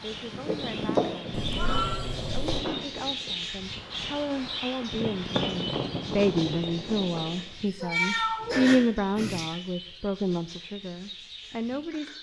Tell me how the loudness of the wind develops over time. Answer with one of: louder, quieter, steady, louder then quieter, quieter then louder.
quieter then louder.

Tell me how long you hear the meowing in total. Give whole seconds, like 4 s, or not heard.
3 s.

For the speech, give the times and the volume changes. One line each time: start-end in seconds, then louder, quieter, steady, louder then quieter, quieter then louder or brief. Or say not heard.
0.0-12.1 louder then quieter.